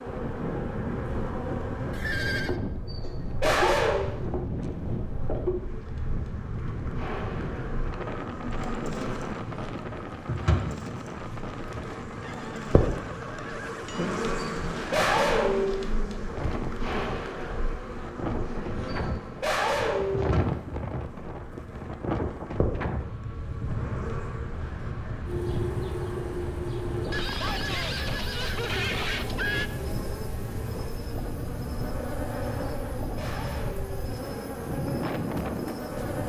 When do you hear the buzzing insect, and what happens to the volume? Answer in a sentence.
You can hear the buzzing insect from 0.0 to 36.2 s, at a steady volume.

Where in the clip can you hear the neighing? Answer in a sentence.
You can hear the neighing from 1.9 to 2.5 s, from 12.2 to 14.1 s and from 27.1 to 29.7 s.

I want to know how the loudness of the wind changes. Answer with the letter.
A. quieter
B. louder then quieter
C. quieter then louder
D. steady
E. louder
D.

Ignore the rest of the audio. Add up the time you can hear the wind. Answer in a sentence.
The wind can be heard for 36 seconds in total.